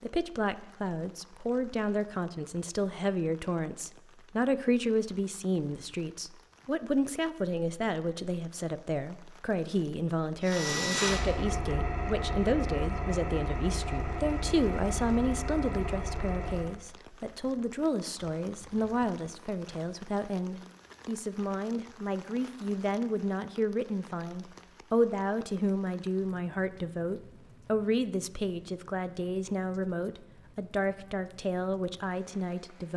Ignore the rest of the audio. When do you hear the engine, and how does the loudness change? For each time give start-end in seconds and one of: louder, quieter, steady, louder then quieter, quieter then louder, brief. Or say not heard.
10.4-16.8 quieter.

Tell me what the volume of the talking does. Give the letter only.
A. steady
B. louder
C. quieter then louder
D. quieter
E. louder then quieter
A.